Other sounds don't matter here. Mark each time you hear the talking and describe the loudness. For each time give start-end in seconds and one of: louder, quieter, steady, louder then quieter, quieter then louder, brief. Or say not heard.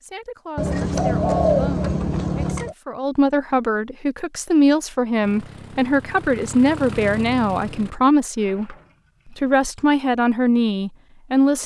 0.0-8.8 louder
9.3-11.6 brief.